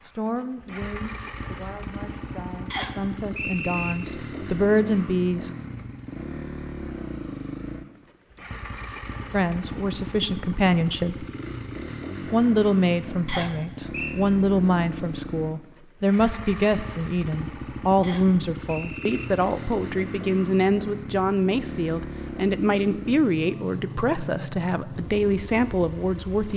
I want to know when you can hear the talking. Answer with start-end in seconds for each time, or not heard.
0.1-5.5, 9.3-11.2, 12.2-26.5.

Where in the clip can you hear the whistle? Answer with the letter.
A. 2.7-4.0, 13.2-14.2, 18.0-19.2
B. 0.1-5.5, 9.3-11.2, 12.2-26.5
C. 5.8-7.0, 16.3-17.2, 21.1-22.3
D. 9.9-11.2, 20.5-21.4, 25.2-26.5
A.